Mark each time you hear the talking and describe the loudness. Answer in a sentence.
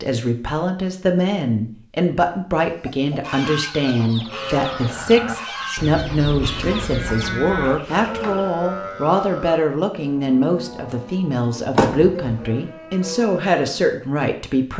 You can hear the talking from 0.0 to 14.7 s, at a steady volume.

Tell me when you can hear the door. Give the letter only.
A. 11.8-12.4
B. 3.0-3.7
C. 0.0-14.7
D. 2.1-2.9
A.